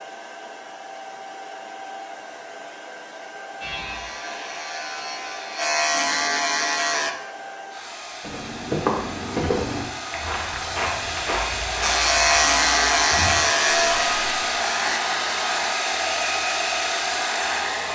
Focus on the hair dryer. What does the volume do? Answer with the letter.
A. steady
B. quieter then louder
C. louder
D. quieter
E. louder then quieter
C.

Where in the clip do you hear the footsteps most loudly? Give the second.
9 s.